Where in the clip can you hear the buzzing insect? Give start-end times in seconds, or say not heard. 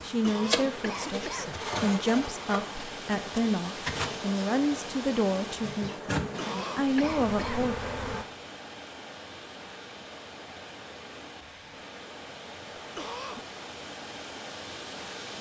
0.0-8.2.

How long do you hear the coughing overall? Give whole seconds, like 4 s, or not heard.
4 s.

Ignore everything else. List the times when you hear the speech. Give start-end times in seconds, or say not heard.
0.0-7.8.